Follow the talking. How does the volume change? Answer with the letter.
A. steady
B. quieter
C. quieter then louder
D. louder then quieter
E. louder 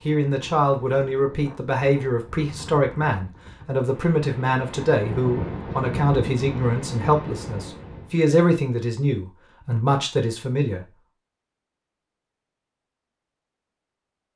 A.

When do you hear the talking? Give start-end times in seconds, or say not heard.
0.1-10.8.